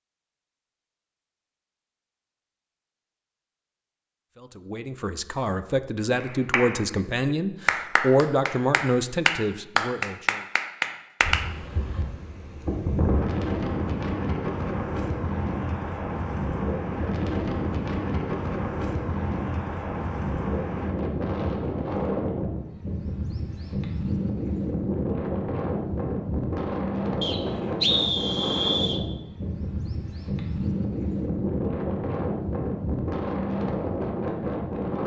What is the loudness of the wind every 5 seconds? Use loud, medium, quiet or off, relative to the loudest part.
off, off, loud, loud, loud, loud, loud.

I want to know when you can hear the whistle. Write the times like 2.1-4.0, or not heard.
27.2-29.0.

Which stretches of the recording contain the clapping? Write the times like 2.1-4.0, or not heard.
6.2-11.4.